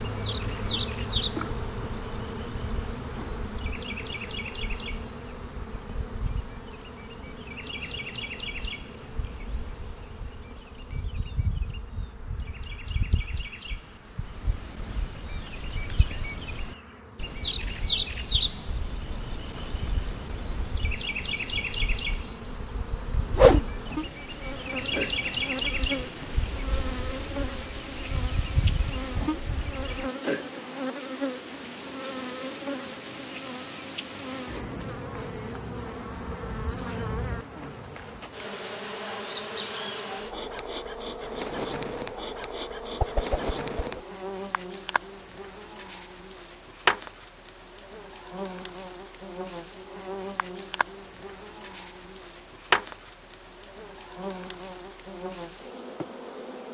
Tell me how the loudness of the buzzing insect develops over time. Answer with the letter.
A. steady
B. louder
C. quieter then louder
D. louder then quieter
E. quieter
C.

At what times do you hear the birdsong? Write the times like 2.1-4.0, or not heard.
0.0-30.1.